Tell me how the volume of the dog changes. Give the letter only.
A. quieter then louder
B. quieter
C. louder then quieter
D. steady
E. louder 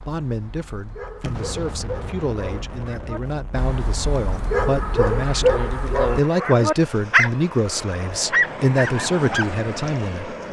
E.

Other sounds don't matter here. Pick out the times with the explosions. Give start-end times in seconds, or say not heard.
1.2-3.8.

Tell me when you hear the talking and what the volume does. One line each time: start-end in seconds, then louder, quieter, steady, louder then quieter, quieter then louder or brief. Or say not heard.
0.0-10.3 louder.